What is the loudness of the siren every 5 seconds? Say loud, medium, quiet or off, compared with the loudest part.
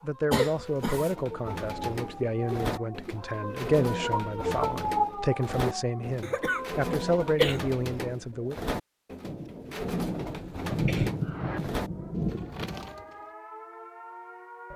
loud, loud, medium.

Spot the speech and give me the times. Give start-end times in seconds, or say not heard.
0.0-8.6.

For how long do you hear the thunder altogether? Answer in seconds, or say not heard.
4 s.